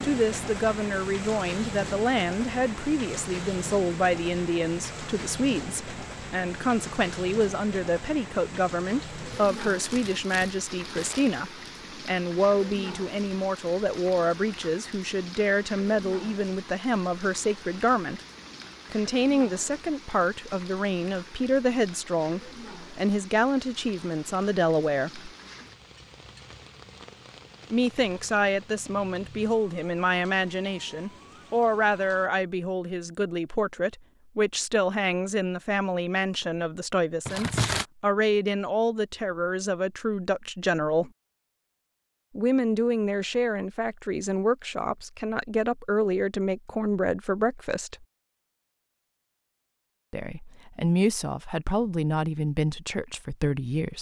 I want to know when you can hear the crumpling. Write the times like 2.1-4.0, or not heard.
9.2-11.2, 37.2-37.9.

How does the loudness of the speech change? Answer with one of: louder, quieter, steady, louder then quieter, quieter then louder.
steady.